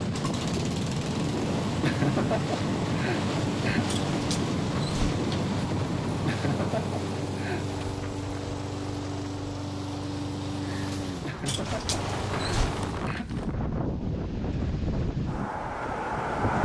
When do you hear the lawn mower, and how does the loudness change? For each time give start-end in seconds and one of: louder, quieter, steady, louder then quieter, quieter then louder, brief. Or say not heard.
0.0-13.1 steady.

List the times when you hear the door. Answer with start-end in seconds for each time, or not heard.
3.9-5.4, 11.4-12.8.